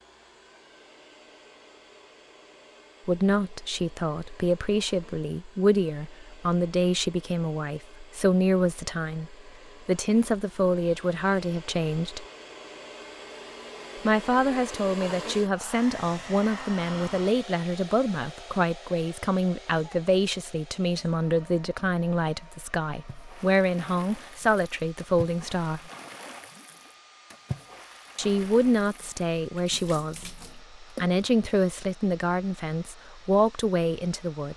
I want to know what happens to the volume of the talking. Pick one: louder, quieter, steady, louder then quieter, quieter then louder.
steady.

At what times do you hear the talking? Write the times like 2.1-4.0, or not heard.
3.0-12.2, 14.1-25.9, 28.1-34.5.